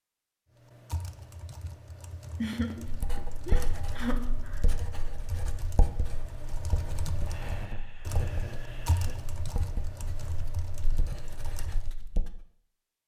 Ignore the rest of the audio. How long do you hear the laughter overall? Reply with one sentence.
You can hear the laughter for 4 seconds altogether.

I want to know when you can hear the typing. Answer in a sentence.
You can hear the typing from 0.6 to 11.9 s.